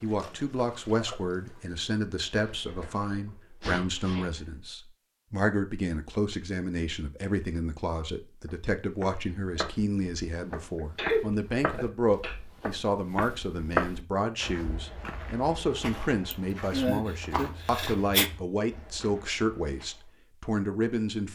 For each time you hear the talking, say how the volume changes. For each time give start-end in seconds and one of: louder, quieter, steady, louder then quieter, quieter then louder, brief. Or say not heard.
0.0-21.3 steady.